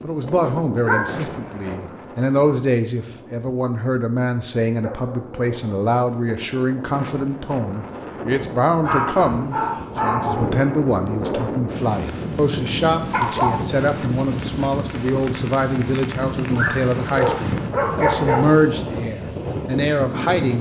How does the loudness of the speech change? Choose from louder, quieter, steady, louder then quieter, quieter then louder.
steady.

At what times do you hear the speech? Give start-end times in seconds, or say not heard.
0.0-20.5.